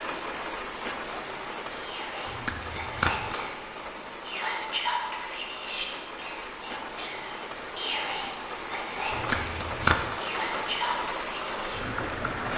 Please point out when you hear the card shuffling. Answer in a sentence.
You can hear the card shuffling from 2.2 to 3.4 s and from 9.1 to 10.1 s.